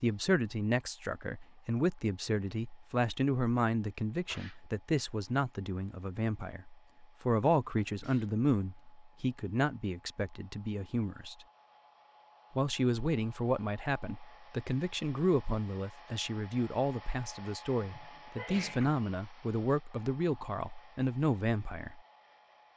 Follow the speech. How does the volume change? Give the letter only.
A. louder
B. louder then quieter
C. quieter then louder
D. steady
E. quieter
D.